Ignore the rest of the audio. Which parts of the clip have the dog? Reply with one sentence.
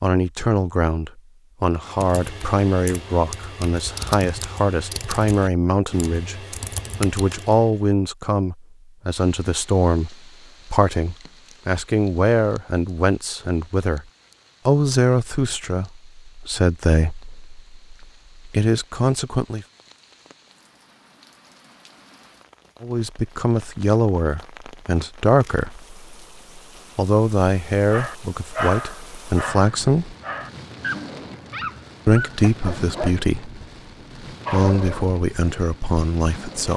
You can hear the dog from 27.9 to 33.6 s and from 34.5 to 35.0 s.